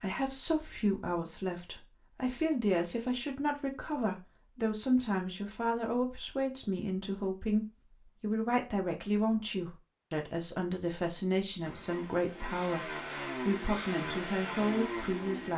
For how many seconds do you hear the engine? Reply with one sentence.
The engine can be heard for 4 seconds in total.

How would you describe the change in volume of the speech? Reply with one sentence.
The loudness of the speech stays about the same.